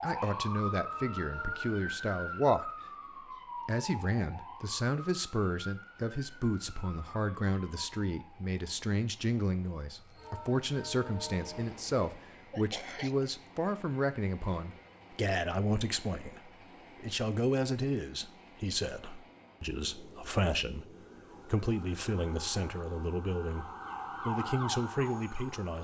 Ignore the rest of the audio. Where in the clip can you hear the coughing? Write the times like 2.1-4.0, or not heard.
12.5-13.3.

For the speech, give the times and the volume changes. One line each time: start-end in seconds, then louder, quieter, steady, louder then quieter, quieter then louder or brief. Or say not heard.
0.0-2.7 brief
3.6-25.7 steady.